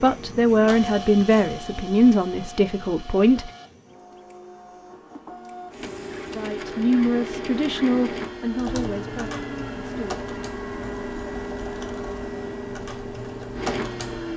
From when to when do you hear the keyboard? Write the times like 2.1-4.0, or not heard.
8.6-14.3.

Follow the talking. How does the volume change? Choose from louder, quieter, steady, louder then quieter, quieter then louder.
quieter.